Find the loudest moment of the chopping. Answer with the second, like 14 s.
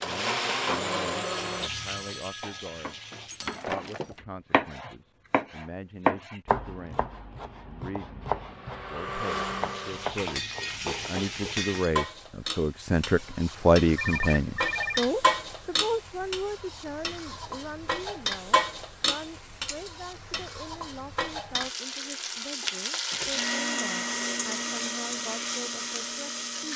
6 s.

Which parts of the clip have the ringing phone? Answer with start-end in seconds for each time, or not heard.
1.2-3.6, 13.9-15.0.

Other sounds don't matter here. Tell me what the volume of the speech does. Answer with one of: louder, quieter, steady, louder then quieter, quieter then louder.
louder then quieter.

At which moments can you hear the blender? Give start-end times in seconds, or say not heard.
0.0-1.7, 8.2-10.2, 23.1-26.7.